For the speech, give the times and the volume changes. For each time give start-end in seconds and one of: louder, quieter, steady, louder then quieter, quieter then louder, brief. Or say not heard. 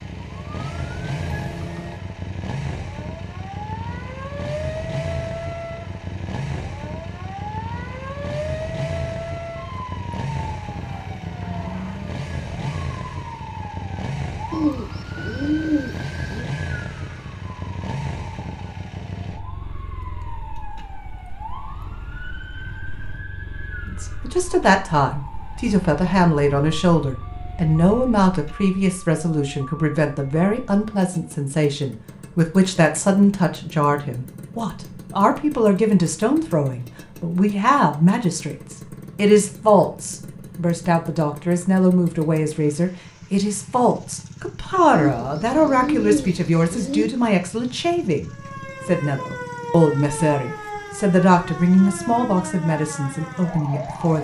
23.9-54.1 steady.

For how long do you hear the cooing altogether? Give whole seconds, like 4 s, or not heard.
4 s.